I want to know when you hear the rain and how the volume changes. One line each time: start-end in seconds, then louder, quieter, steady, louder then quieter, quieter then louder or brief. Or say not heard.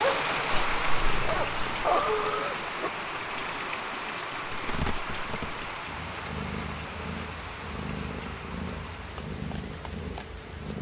0.0-10.7 quieter.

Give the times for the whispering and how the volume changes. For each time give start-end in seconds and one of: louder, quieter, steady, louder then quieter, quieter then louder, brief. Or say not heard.
not heard.